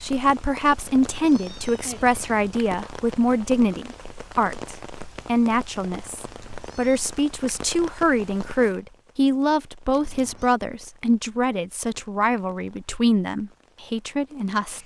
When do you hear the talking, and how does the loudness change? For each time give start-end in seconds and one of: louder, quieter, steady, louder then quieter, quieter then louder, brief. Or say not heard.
0.0-14.8 steady.